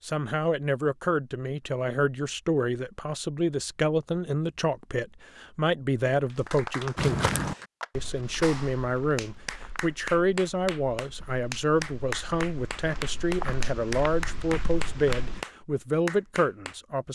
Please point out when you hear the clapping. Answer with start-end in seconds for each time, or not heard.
6.2-16.8.